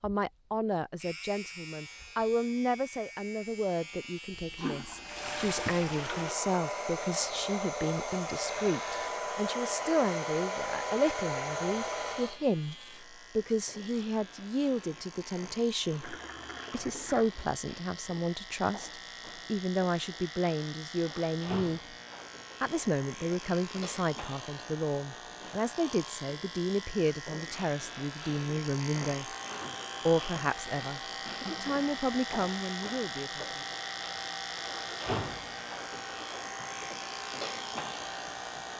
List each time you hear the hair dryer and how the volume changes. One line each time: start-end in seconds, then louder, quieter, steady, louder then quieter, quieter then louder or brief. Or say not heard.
5.0-12.4 steady
29.1-38.7 steady.